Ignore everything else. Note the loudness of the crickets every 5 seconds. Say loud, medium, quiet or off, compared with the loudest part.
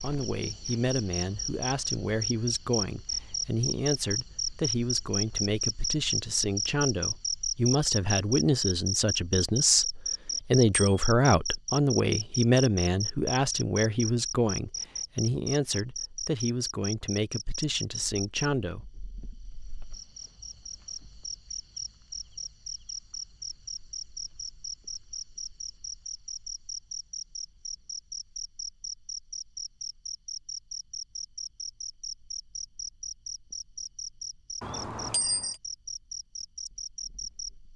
loud, loud, loud, medium, medium, medium, medium, medium.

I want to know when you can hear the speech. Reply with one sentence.
The speech can be heard from 0.0 to 18.9 s.